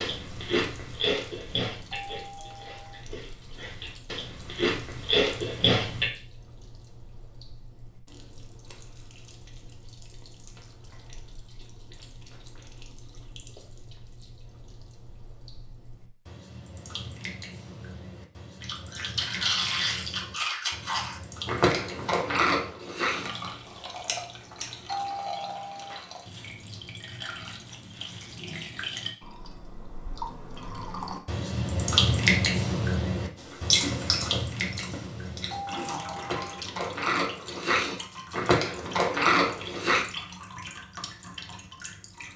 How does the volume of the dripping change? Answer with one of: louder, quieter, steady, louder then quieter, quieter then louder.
louder then quieter.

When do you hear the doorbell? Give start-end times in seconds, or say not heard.
1.9-3.0, 24.9-26.0, 35.5-36.6.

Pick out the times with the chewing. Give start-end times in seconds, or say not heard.
0.0-6.1, 18.6-25.1, 33.4-40.0.